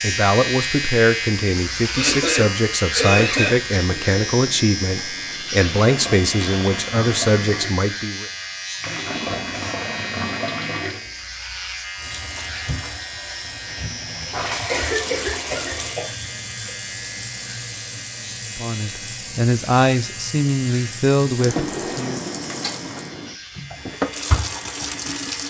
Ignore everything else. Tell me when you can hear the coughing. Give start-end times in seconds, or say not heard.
1.9-3.5, 14.4-16.7.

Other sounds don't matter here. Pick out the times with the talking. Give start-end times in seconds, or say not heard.
0.0-8.2, 18.6-22.2.